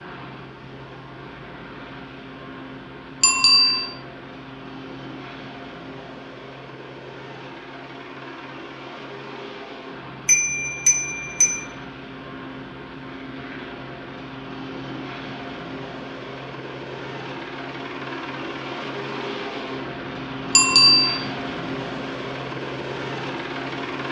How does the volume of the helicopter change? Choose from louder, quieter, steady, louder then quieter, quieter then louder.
louder.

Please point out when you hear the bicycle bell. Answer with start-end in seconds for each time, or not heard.
3.2-3.9, 10.2-11.6, 20.6-21.1.